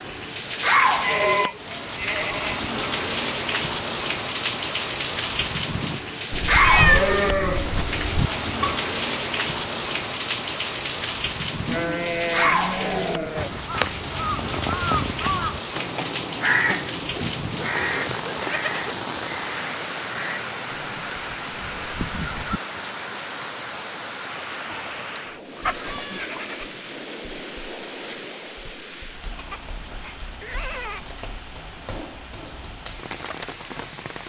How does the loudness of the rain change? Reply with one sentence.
The volume of the rain goes down.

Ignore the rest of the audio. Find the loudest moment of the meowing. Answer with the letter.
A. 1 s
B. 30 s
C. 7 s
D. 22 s
C.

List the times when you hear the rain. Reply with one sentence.
The rain can be heard from 0.0 to 34.2 s.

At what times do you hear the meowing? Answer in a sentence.
The meowing can be heard from 6.3 to 8.3 s.